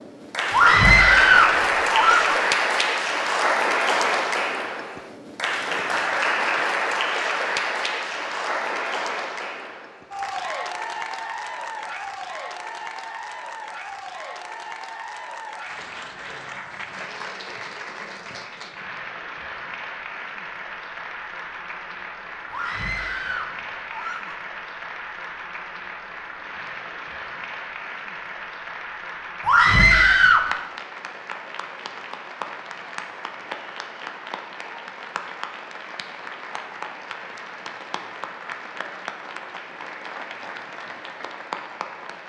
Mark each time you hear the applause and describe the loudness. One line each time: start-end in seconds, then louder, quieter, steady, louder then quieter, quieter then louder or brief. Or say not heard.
0.0-42.2 quieter.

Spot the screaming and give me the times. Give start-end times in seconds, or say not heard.
0.5-2.4, 22.5-24.4, 29.4-30.5.